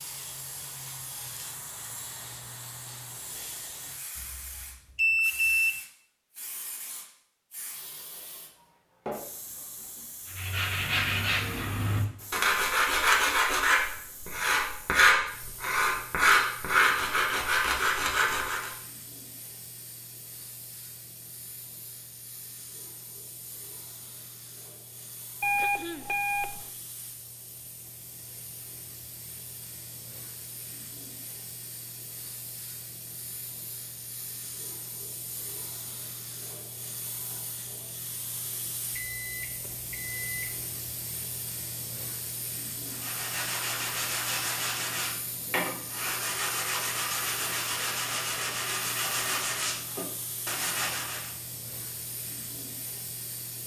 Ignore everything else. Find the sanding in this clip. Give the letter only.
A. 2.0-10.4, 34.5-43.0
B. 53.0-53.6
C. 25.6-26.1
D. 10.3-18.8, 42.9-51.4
D.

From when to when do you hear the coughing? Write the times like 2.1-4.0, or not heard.
25.6-26.1.